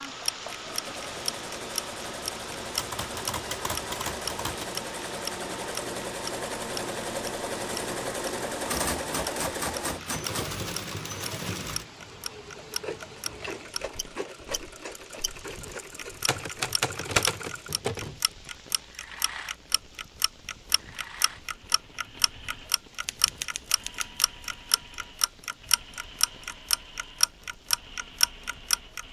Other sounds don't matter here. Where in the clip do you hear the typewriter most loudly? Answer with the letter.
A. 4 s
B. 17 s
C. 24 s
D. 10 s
B.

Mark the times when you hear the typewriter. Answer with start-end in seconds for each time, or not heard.
2.8-4.7, 8.7-10.5, 16.2-18.1, 23.1-24.2.